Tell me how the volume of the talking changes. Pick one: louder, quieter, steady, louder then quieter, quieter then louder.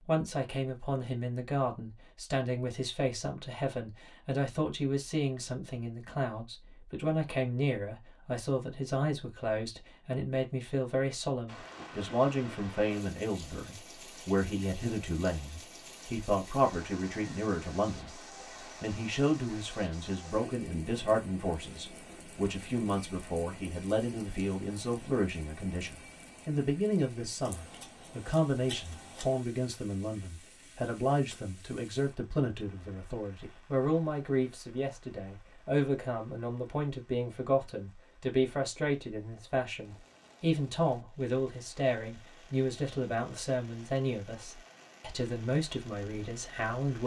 steady.